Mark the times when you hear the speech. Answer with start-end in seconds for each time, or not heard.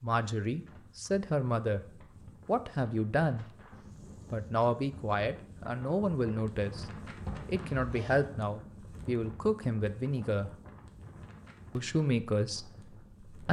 0.0-3.5, 4.3-10.5, 11.8-13.4.